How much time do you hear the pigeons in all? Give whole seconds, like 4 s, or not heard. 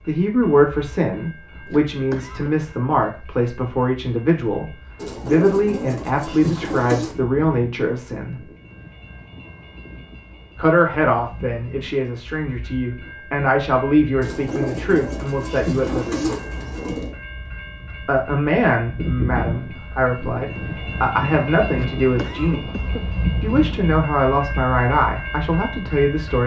5 s.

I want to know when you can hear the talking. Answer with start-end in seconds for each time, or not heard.
0.1-8.4, 10.6-16.4, 18.1-22.7, 23.4-26.4.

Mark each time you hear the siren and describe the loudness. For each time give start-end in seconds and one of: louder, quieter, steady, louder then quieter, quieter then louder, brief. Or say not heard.
not heard.